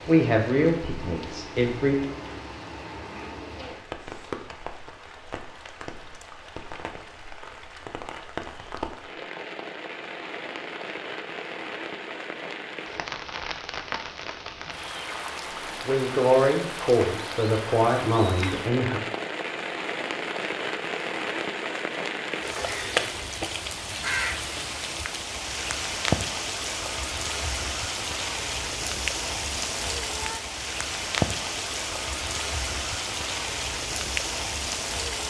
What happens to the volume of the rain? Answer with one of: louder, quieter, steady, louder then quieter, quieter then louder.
louder.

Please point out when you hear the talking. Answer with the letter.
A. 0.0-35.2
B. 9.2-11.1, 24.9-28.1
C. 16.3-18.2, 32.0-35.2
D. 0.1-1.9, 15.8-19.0
D.